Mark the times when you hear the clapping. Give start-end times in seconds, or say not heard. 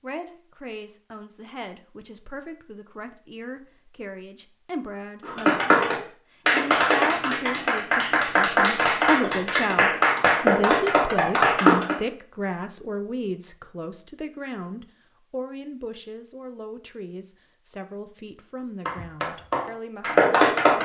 5.2-11.9, 18.9-20.7.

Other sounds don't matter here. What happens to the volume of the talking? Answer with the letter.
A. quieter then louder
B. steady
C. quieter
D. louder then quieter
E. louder
D.